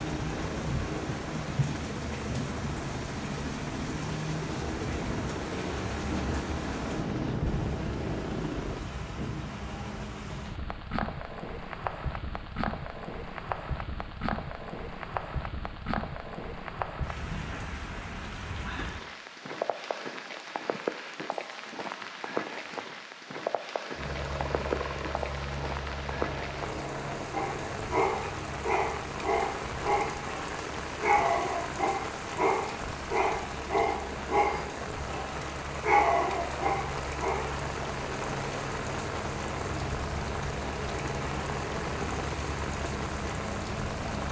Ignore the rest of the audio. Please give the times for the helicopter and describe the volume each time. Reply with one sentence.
You can hear the helicopter from 0.0 to 8.8 s, at a steady volume; and from 23.9 to 44.2 s, getting quieter then louder.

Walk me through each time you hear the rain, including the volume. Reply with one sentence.
The rain can be heard from 0.0 to 44.2 s, at a steady volume.